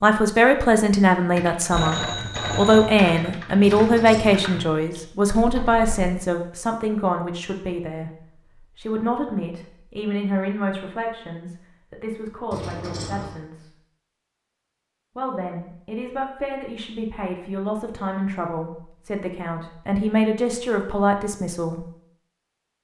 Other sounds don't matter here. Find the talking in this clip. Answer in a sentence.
The talking can be heard from 0.0 to 8.1 s, from 8.8 to 13.7 s and from 15.2 to 21.9 s.